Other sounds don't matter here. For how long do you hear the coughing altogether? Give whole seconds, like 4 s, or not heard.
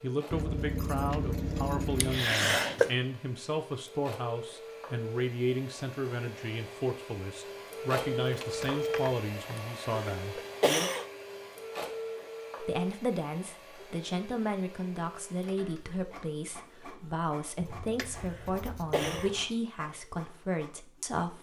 4 s.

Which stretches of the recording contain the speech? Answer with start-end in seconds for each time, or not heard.
0.0-10.4, 12.6-21.3.